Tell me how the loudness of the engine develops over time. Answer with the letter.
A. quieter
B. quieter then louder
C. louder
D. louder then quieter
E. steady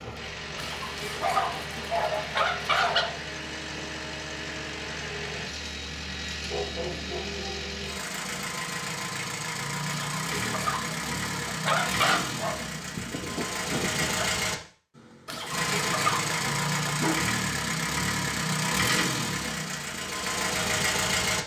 C.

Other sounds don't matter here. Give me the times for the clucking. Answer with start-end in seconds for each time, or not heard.
0.6-3.0, 9.8-12.3, 15.2-16.9.